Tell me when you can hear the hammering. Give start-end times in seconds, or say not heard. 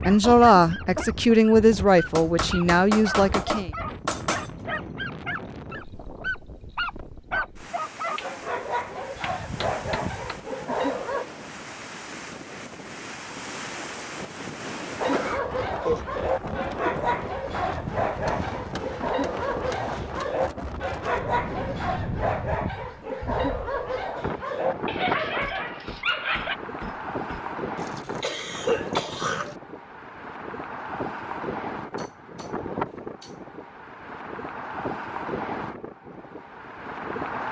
2.1-4.5, 8.2-10.3, 18.2-20.4, 25.4-27.4, 31.9-33.5.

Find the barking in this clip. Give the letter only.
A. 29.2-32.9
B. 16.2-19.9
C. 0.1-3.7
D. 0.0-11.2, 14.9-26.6
D.